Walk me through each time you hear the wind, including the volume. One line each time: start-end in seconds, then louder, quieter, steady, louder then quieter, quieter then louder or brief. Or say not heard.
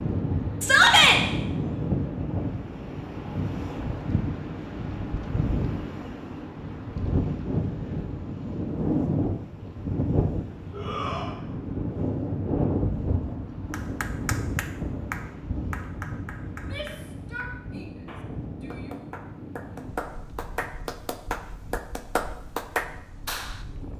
0.0-23.9 quieter.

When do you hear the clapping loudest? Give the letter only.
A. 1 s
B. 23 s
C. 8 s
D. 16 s
B.